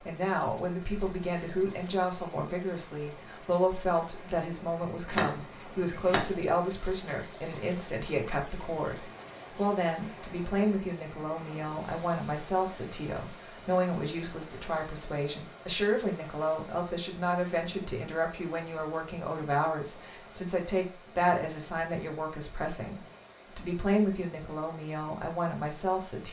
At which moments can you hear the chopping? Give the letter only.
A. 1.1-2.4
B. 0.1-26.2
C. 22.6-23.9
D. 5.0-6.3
D.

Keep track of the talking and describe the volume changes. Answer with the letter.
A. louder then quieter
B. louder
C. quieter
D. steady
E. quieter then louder
D.